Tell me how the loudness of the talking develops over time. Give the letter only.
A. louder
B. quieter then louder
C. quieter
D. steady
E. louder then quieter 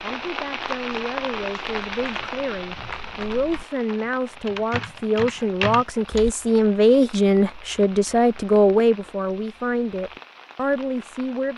E.